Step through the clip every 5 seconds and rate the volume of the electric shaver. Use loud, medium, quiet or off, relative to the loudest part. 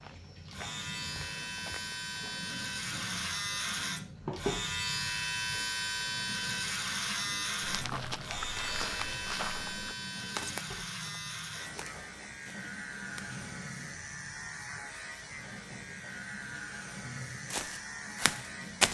loud, loud, medium, medium.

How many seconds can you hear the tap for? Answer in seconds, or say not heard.
19 s.